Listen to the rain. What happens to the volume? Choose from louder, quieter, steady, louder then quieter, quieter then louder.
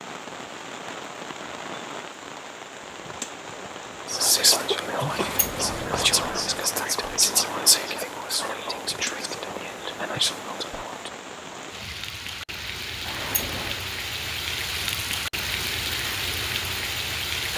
louder.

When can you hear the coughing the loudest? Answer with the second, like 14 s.
5 s.